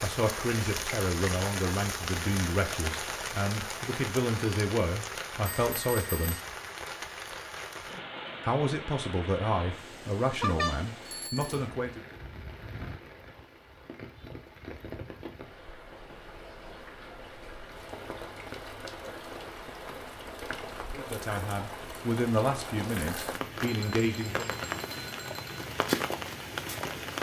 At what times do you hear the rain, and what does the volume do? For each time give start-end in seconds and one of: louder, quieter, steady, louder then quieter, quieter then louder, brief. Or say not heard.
0.0-27.1 quieter then louder.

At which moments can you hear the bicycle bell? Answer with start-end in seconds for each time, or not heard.
5.6-6.2, 10.4-11.6, 23.6-25.6.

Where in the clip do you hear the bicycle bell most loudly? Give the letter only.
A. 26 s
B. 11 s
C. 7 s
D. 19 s
B.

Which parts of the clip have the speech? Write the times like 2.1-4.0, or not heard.
0.0-6.3, 8.4-12.0, 20.9-24.6.